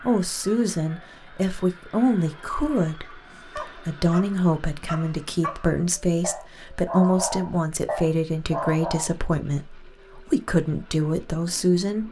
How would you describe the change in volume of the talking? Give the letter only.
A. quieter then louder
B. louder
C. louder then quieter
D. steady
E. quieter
D.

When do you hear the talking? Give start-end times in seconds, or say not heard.
0.0-12.0.